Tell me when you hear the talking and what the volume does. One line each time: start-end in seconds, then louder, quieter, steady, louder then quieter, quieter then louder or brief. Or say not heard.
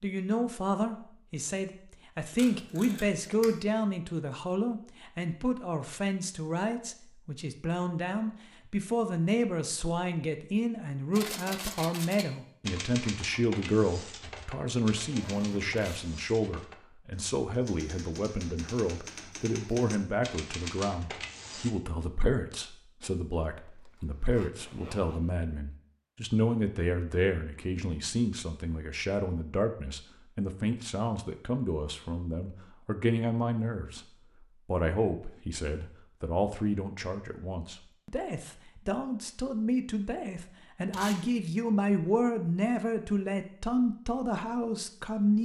0.0-45.4 steady.